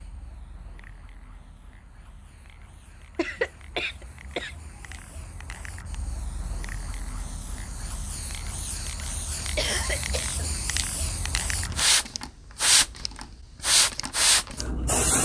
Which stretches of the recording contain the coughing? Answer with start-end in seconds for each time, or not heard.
3.1-4.5, 9.6-10.4.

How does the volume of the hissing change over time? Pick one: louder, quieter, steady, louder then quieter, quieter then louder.
louder.